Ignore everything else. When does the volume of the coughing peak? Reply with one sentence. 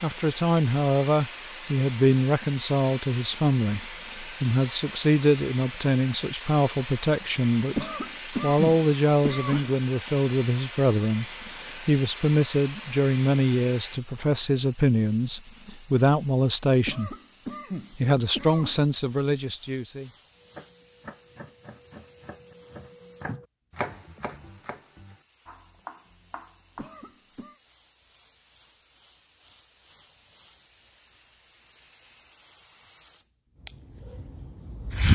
The volume of the coughing peaks at 9 seconds.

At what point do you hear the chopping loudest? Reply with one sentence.
The loudest moment of the chopping is at 24 seconds.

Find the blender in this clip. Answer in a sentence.
The blender can't be heard in this clip.